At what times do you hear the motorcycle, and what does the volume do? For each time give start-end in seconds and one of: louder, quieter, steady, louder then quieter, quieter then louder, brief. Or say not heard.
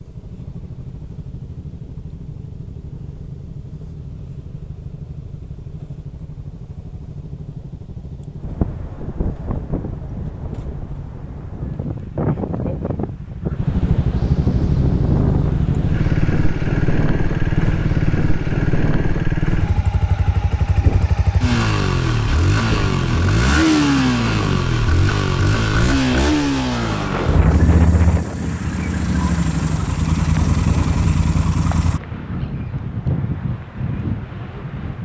0.0-32.0 louder.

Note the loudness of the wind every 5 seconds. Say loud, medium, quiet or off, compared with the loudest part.
off, loud, loud, loud, loud, loud, loud.